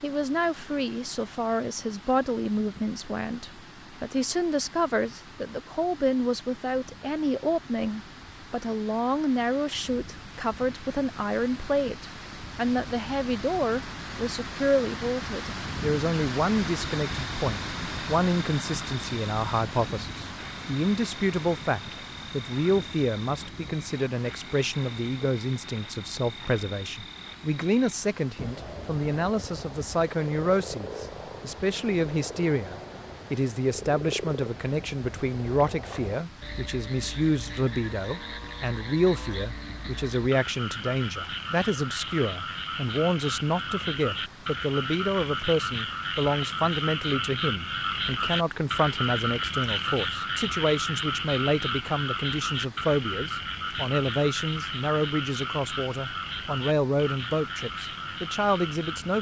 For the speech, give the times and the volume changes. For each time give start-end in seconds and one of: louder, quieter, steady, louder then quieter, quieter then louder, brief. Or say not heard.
0.0-59.1 steady.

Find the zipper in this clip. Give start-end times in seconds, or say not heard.
not heard.